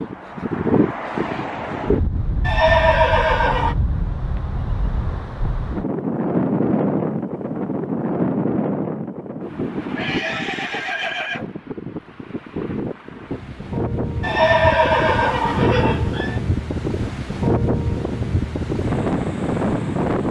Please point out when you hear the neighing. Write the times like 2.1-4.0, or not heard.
2.5-3.8, 9.9-11.5, 14.2-16.4.